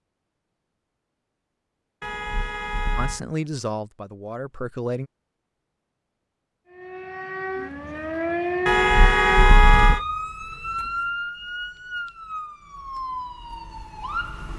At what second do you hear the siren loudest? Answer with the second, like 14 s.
9 s.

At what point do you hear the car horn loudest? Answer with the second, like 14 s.
10 s.